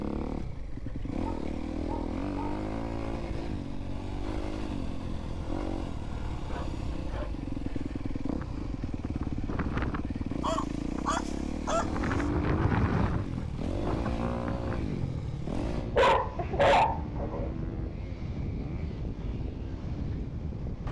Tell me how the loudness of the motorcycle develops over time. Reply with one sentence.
The loudness of the motorcycle goes down.